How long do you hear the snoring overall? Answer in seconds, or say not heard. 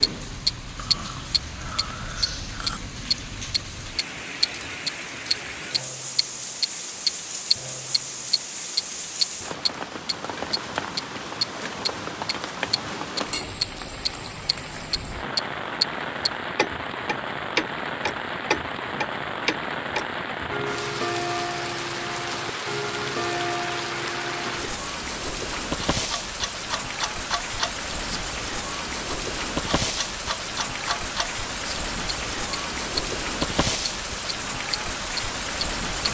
2 s.